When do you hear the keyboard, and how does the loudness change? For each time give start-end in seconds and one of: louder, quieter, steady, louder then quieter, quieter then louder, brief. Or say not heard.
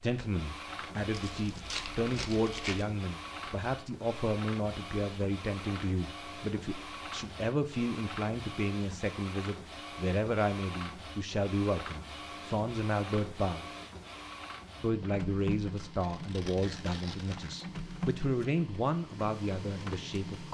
not heard.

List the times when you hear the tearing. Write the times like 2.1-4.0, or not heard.
1.1-2.9, 15.8-17.6.